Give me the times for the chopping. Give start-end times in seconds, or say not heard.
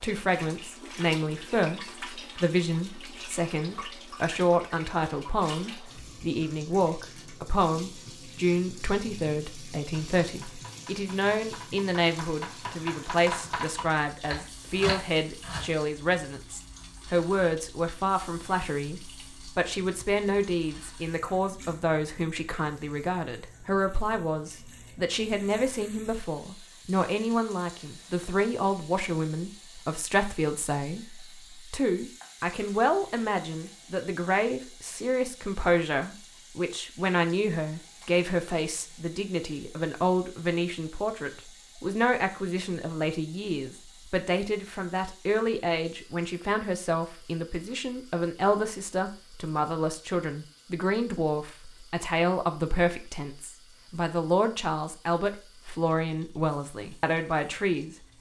9.9-15.8.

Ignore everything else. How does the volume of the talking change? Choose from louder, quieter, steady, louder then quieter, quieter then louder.
steady.